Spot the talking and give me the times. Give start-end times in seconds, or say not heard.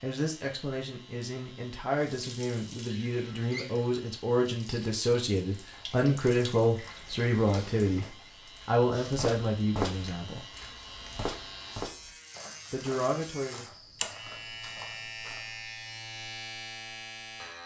0.0-10.4, 12.7-13.7.